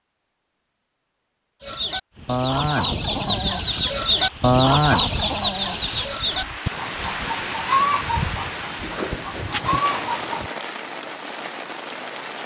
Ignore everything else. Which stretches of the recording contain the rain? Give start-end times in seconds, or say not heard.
2.1-12.4.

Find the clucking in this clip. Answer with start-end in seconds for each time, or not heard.
1.6-10.5.